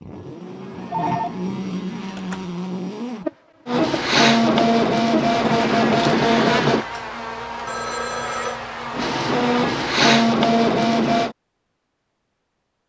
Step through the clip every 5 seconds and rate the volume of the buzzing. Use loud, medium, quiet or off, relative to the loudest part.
loud, loud, off.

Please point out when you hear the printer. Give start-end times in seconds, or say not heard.
3.6-6.8, 8.9-11.3.